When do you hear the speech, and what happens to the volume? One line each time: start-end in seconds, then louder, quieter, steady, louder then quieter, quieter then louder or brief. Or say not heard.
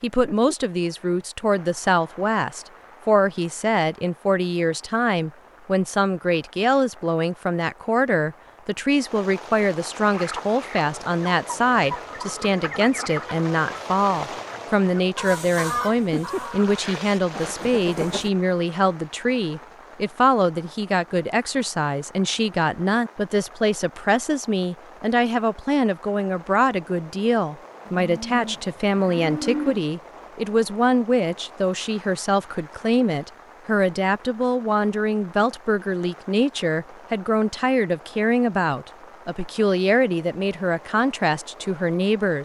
0.0-42.3 steady.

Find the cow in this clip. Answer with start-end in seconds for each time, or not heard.
27.9-29.9.